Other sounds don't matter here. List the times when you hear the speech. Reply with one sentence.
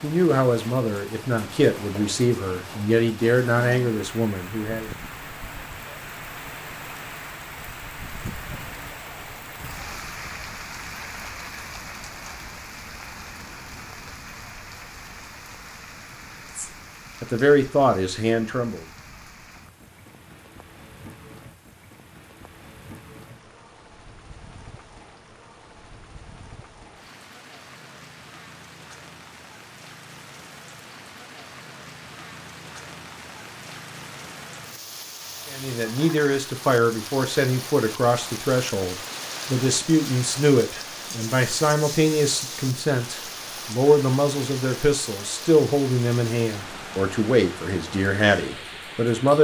The speech can be heard from 0.0 to 4.9 s, from 16.6 to 18.9 s and from 35.5 to 49.3 s.